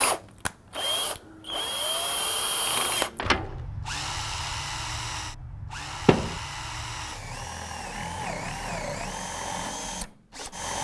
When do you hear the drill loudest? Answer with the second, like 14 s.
3 s.